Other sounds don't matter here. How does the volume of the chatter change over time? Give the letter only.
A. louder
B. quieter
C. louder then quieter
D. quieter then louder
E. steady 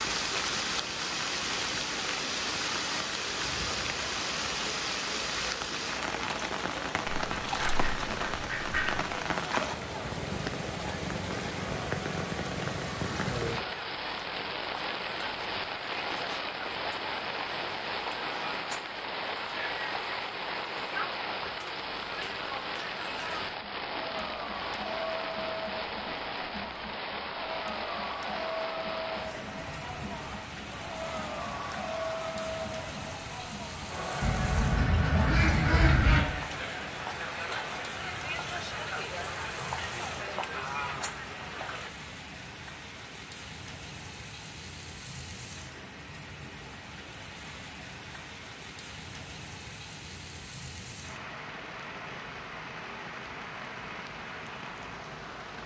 A.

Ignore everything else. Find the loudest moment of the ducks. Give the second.
36 s.